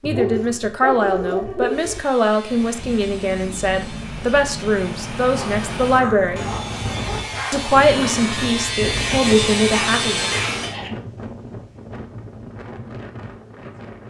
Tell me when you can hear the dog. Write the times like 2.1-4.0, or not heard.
0.0-2.0, 5.3-7.8, 9.7-10.9.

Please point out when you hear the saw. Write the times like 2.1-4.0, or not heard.
1.6-10.8.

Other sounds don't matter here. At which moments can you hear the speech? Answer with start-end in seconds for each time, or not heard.
0.0-6.5, 7.5-10.3.